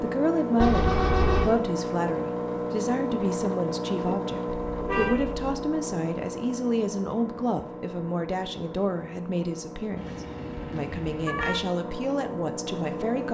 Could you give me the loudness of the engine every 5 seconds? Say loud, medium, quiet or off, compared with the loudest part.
loud, medium, medium.